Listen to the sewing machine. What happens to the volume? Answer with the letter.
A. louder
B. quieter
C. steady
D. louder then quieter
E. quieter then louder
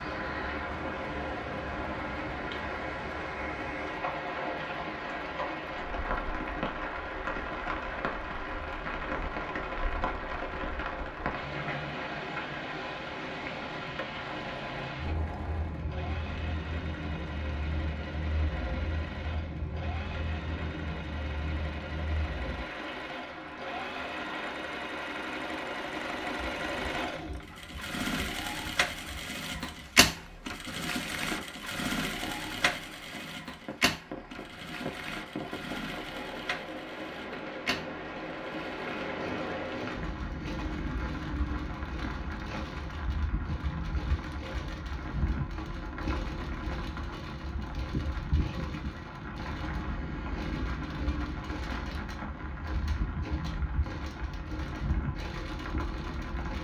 D.